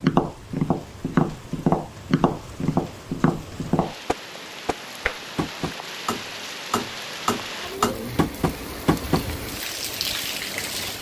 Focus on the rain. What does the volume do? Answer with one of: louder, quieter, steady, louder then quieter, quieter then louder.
louder.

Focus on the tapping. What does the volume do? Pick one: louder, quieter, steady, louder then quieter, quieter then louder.
quieter then louder.